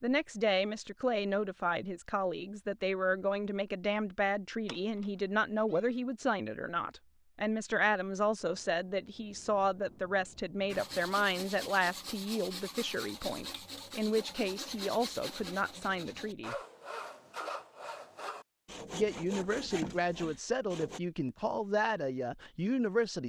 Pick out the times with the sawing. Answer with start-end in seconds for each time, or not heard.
10.7-21.0.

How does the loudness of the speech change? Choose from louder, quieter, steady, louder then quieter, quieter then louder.
steady.